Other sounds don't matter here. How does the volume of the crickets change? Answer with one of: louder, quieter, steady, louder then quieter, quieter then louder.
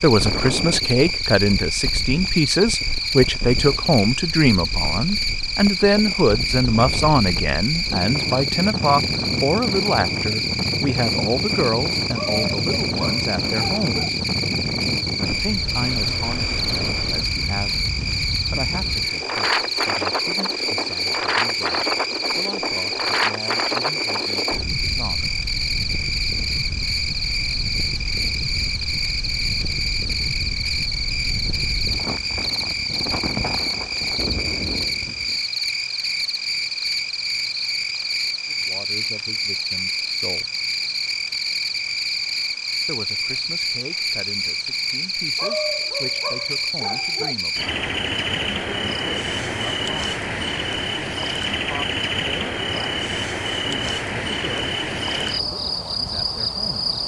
steady.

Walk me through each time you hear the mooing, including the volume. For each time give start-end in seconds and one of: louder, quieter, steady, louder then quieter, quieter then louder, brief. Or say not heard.
not heard.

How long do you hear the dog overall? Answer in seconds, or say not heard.
4 s.